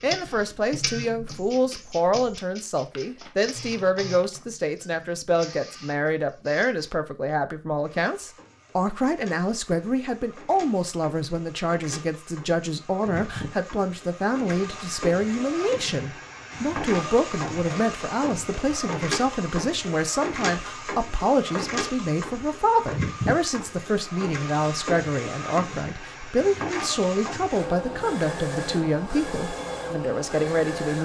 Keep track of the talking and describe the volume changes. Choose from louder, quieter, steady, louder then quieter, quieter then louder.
steady.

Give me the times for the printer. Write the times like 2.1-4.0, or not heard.
0.0-31.0.